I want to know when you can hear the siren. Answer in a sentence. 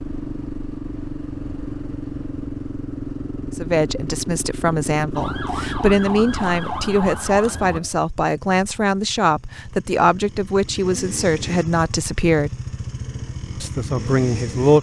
You can hear the siren from 5.2 to 7.8 s.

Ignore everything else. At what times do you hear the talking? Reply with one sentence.
The talking can be heard from 3.5 to 12.5 s and from 13.6 to 14.7 s.